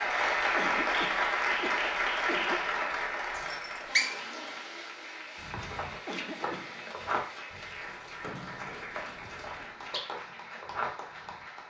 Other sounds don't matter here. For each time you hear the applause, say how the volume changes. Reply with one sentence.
You can hear the applause from 0.0 to 11.6 s, getting quieter.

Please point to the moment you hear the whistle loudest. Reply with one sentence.
The volume of the whistle peaks at 4 seconds.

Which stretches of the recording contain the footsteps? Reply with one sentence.
You can hear the footsteps from 5.3 to 11.4 s.